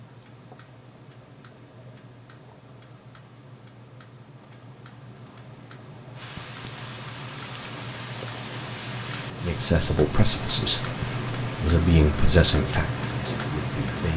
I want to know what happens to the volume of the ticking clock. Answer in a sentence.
The volume of the ticking clock goes up.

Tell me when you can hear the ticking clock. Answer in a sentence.
You can hear the ticking clock from 0.0 to 14.1 s.